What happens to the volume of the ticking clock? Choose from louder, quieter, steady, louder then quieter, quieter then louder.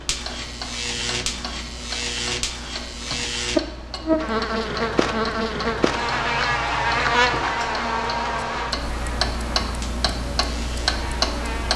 louder.